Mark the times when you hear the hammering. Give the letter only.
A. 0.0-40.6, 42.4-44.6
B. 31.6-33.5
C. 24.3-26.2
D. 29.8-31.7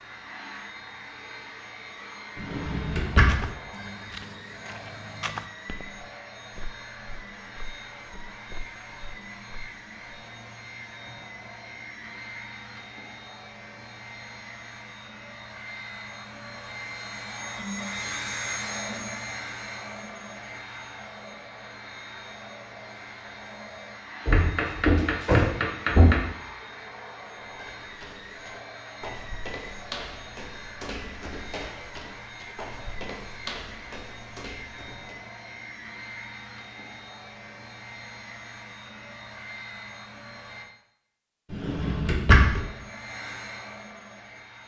C.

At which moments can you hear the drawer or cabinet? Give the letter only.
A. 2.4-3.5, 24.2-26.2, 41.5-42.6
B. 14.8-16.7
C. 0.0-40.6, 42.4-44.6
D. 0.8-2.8
A.